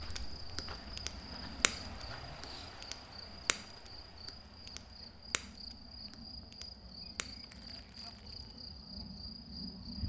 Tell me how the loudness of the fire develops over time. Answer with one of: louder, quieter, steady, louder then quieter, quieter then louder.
quieter.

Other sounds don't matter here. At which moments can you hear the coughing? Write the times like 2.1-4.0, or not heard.
not heard.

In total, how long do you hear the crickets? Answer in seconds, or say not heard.
10 s.